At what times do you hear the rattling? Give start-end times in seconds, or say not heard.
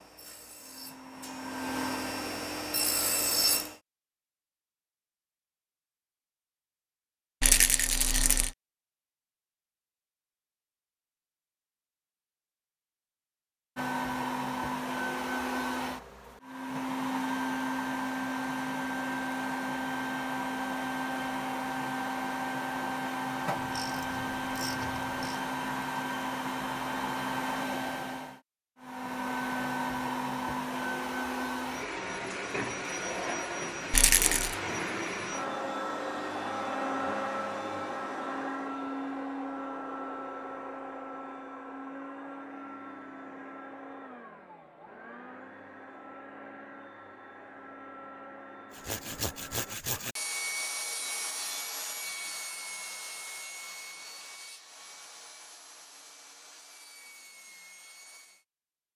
7.4-8.5, 33.9-34.5.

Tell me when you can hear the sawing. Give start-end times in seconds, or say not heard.
0.0-3.8, 48.7-58.5.